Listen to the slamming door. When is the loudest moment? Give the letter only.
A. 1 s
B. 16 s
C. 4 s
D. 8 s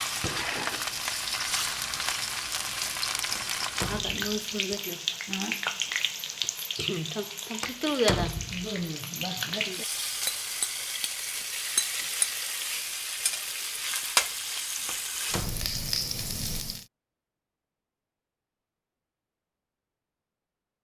D.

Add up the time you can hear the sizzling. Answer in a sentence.
You can hear the sizzling for 17 seconds altogether.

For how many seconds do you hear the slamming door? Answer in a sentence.
You can hear the slamming door for 3 seconds altogether.